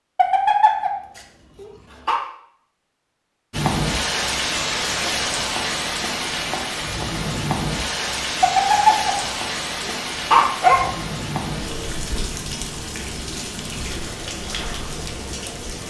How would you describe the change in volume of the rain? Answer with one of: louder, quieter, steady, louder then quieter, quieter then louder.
quieter.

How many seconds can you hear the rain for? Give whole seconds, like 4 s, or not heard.
12 s.